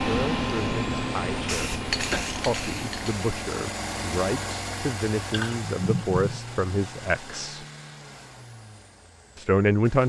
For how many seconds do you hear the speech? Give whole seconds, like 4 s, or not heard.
8 s.